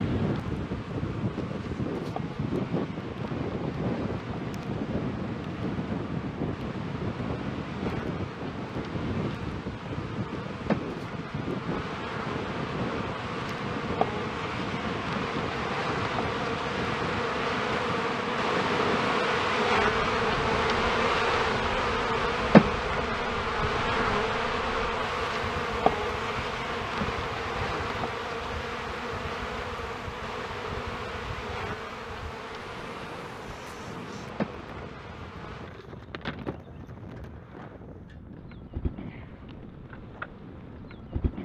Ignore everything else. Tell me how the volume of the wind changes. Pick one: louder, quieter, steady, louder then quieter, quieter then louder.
quieter.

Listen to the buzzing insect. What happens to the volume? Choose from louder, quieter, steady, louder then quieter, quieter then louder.
louder then quieter.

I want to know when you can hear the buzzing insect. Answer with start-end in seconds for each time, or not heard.
0.0-41.3.